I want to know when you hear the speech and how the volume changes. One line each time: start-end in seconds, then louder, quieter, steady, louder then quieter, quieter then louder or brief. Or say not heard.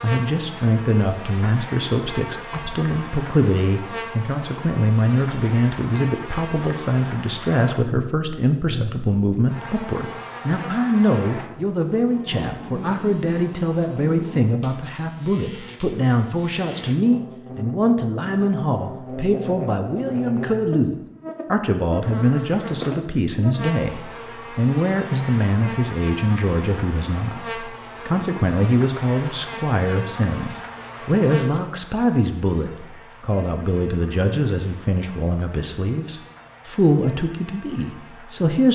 0.0-38.7 steady.